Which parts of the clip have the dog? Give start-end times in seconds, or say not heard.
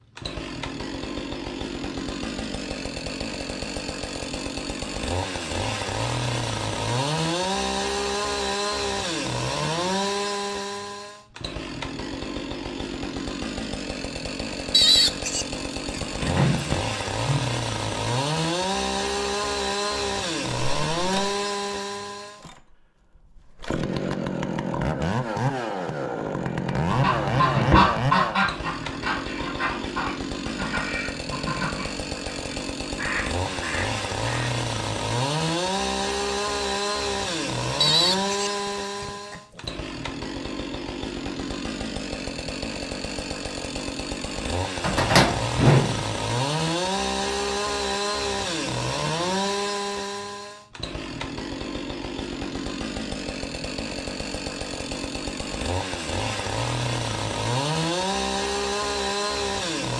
not heard.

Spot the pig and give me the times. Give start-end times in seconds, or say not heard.
14.7-16.8, 37.8-39.6.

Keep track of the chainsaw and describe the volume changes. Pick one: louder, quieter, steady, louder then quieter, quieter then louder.
steady.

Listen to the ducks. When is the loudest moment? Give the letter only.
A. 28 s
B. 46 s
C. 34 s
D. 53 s
A.